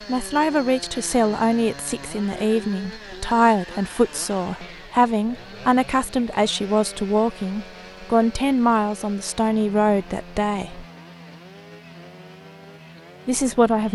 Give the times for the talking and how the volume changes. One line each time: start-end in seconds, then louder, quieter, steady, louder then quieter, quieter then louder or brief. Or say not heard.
0.1-10.8 steady
13.2-13.9 brief.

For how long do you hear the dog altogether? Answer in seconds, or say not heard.
not heard.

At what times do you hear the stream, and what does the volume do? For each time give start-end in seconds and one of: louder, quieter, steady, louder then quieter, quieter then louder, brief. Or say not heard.
not heard.